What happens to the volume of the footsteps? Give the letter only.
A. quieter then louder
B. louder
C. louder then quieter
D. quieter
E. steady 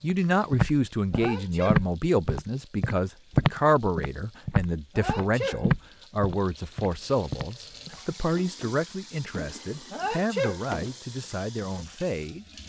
D.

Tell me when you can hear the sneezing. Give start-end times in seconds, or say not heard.
1.1-1.8, 5.0-5.6, 9.9-10.6.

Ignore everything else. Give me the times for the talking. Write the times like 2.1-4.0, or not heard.
0.0-12.4.